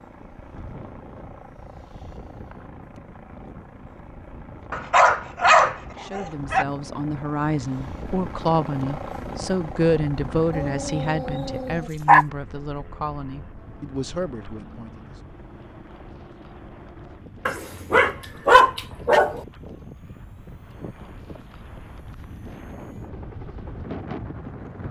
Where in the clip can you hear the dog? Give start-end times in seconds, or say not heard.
4.7-6.7, 10.5-12.2, 17.4-19.4.